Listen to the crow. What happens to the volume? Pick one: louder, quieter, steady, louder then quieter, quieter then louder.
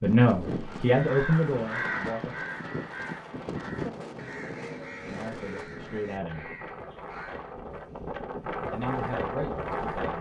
quieter.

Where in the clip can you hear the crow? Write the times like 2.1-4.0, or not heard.
0.5-7.5.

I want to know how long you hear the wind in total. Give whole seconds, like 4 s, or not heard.
10 s.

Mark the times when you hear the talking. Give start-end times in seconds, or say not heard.
0.0-2.5, 5.0-6.5, 8.6-10.1.